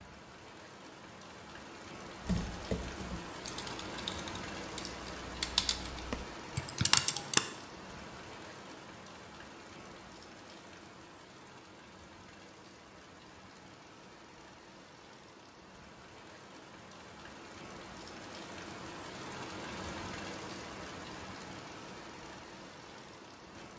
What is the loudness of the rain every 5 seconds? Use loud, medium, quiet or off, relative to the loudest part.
loud, loud, medium, loud, loud.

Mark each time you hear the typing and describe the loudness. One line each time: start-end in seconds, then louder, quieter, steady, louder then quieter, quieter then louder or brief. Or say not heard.
2.2-7.4 quieter then louder.